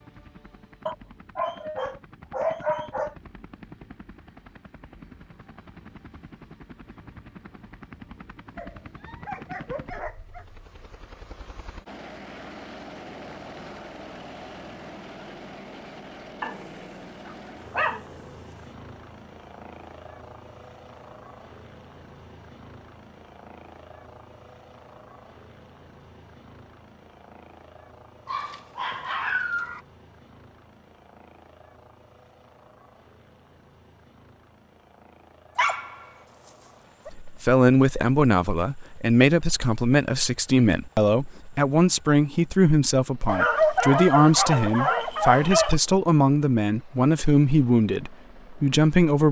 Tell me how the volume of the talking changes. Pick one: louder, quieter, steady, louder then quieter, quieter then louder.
steady.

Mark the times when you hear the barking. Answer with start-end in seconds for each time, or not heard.
0.8-3.1, 8.6-10.4, 16.4-18.4, 28.2-29.8, 35.5-37.1, 43.2-45.8.